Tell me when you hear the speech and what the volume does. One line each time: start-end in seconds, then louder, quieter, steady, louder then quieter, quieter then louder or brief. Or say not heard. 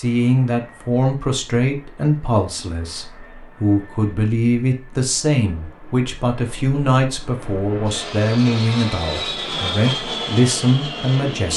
0.0-11.5 steady.